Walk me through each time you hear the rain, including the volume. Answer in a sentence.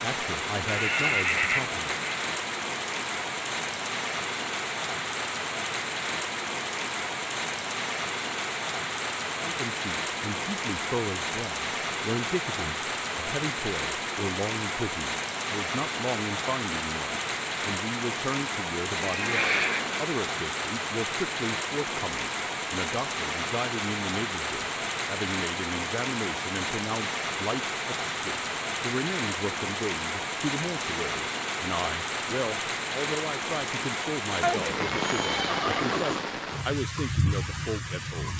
You can hear the rain from 0.0 to 38.3 s, at a steady volume.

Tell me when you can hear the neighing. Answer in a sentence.
You can hear the neighing from 0.7 to 2.2 s, from 18.9 to 20.1 s and from 34.4 to 36.2 s.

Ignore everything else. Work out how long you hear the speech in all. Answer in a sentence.
The speech can be heard for 31 seconds in total.